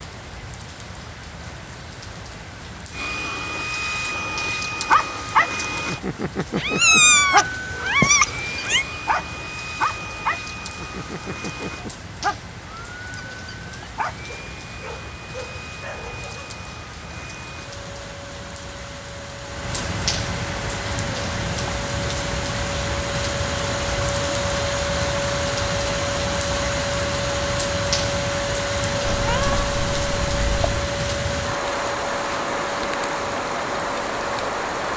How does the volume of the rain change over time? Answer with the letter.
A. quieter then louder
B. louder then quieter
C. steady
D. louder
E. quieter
D.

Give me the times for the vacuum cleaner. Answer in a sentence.
The vacuum cleaner can be heard from 2.9 to 34.9 s.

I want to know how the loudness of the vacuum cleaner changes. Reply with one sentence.
The volume of the vacuum cleaner goes down, then up.